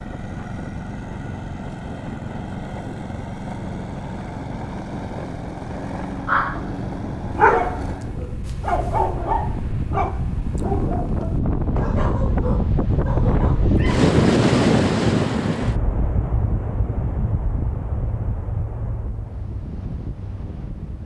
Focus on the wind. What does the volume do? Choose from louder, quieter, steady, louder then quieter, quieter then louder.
louder then quieter.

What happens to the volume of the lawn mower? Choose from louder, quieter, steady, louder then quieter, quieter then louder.
steady.